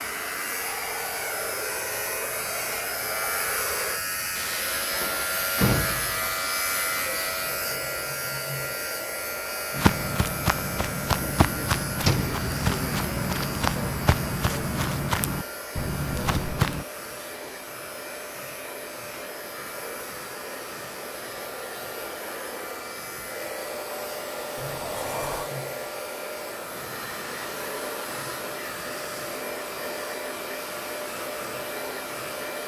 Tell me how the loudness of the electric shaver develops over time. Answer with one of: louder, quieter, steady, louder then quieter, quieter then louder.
quieter.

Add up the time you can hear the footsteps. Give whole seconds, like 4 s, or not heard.
7 s.